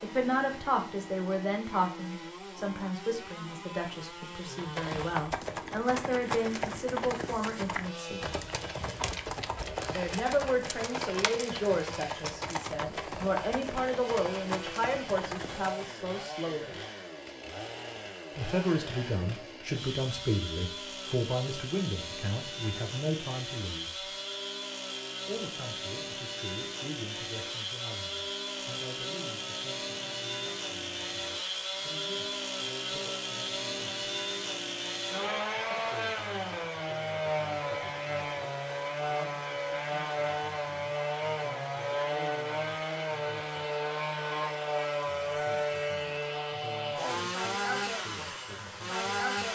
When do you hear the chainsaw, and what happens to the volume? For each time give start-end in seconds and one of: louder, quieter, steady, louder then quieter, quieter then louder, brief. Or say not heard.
0.0-49.5 louder.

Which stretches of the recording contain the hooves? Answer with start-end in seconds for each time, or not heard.
4.5-15.9.